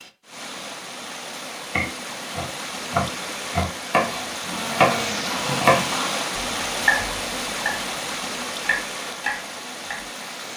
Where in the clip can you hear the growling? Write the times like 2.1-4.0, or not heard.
4.5-6.2.